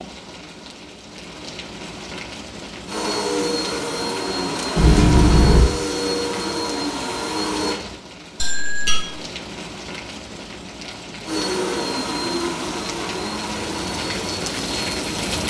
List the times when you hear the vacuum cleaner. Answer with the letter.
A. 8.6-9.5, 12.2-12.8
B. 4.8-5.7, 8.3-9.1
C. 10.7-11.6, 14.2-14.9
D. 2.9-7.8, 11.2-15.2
D.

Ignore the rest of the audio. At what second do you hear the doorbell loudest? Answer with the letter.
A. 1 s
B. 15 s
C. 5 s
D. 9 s
C.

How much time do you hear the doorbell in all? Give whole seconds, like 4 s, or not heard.
2 s.